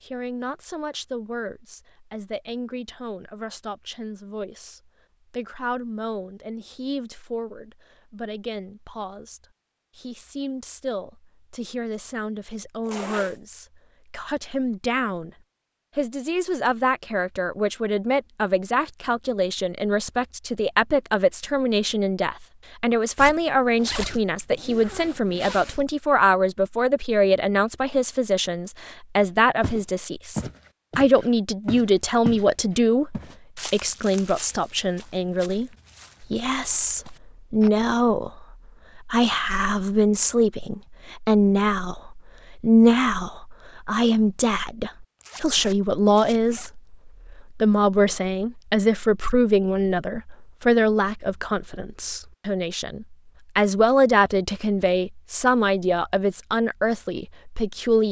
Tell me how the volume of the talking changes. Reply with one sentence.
The loudness of the talking goes up.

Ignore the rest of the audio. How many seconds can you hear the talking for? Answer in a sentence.
You can hear the talking for 57 seconds altogether.